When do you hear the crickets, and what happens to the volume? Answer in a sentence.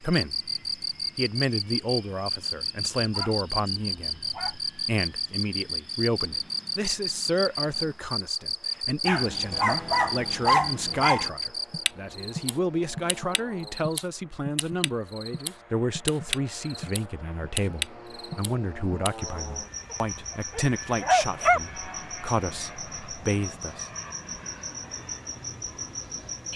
The crickets can be heard from 0.1 to 26.5 s, getting quieter.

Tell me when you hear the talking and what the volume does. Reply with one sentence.
The talking can be heard briefly from 0.0 to 0.5 s; and from 1.1 to 23.9 s, at a steady volume.